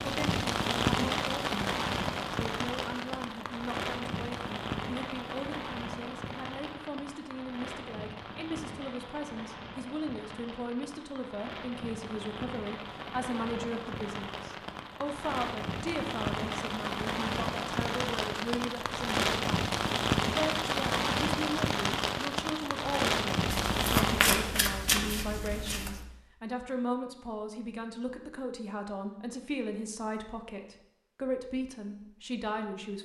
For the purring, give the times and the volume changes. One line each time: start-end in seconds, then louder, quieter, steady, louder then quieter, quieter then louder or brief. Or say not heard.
not heard.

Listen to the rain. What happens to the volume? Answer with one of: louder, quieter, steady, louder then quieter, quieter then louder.
quieter then louder.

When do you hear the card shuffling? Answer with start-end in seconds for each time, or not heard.
23.4-26.1.